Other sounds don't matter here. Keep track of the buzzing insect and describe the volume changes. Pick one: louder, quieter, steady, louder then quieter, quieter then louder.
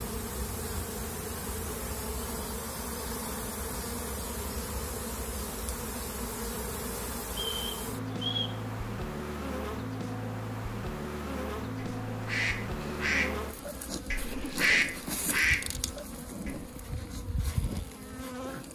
steady.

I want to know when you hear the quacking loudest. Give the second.
15 s.